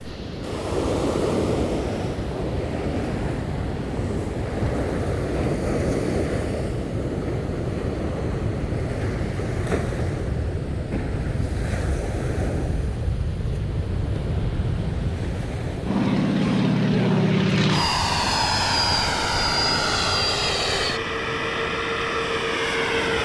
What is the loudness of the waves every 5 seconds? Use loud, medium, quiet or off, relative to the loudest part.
loud, loud, medium, medium, medium.